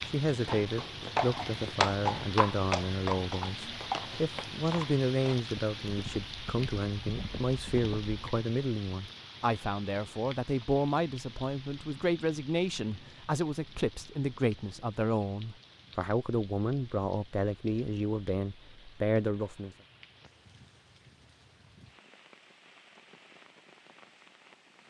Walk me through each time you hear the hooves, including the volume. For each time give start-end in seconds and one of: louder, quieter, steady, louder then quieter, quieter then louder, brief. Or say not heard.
0.1-8.2 quieter.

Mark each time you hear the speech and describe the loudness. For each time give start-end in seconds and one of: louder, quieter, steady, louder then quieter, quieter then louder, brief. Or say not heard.
0.1-19.8 steady.